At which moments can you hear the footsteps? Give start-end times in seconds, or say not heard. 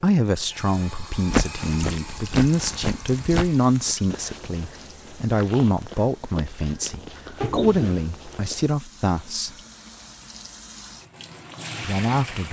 1.1-8.7.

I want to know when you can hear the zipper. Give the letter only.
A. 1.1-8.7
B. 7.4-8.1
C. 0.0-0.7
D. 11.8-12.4
B.